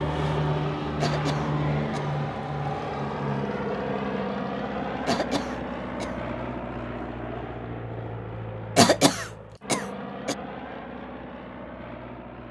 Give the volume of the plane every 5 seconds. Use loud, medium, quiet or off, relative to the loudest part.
loud, medium, medium.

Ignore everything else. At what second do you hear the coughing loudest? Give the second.
9 s.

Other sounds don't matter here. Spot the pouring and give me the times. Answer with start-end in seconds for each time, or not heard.
not heard.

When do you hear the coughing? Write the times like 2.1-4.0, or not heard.
1.0-2.1, 5.0-6.2, 8.8-10.3.